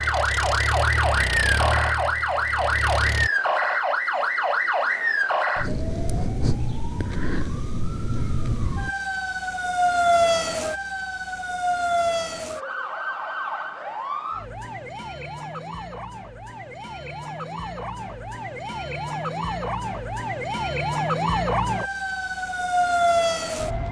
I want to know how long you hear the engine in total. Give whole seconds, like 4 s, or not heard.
3 s.